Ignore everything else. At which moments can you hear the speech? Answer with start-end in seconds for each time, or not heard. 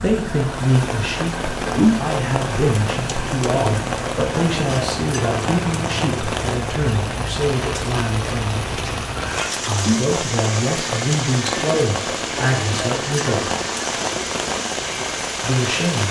0.0-13.5, 15.4-16.0.